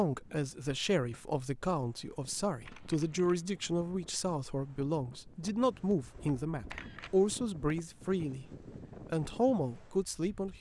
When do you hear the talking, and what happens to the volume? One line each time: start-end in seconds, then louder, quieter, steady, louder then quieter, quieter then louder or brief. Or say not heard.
0.0-8.4 steady
9.1-10.5 brief.